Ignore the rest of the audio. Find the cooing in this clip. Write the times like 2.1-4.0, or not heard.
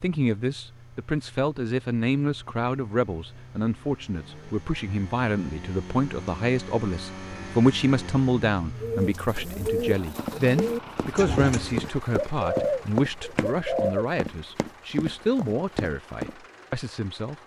8.8-14.1.